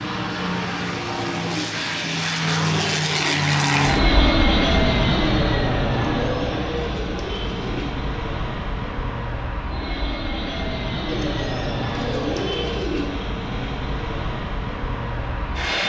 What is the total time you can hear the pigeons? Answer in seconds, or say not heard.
6 s.